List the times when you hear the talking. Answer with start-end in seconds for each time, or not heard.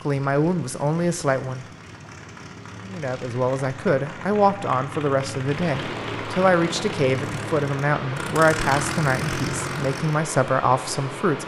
0.0-1.6, 2.9-11.4.